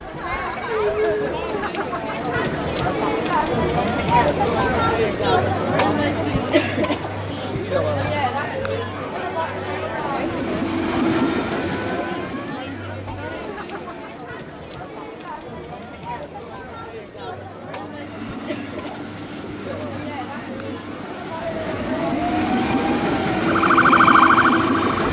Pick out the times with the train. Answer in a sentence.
You can hear the train from 9.8 to 14.3 s and from 17.9 to 25.0 s.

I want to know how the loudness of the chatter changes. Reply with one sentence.
The volume of the chatter goes down.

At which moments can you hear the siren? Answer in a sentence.
The siren can be heard from 21.4 to 25.0 s.